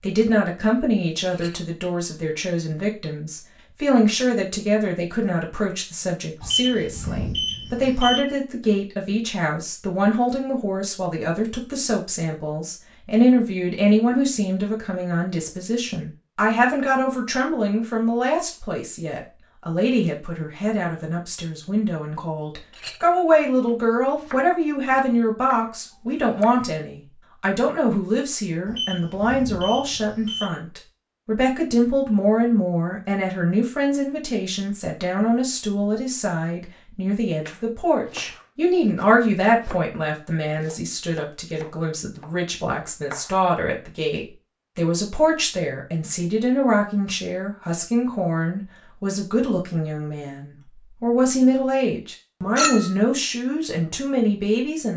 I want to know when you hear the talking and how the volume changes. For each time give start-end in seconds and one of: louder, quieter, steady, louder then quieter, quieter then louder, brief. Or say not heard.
0.0-54.9 steady.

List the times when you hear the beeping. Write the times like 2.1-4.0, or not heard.
6.4-8.2, 28.6-30.4.